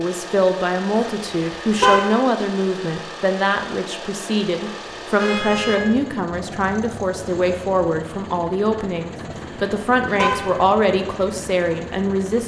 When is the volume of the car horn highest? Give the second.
2 s.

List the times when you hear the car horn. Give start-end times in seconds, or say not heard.
0.9-2.2, 5.2-5.8, 9.3-10.6.